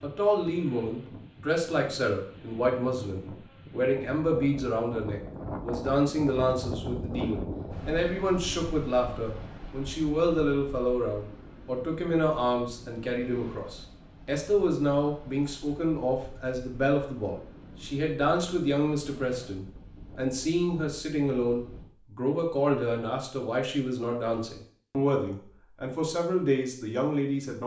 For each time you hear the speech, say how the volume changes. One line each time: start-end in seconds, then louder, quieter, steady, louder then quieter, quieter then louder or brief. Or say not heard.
0.0-27.6 steady.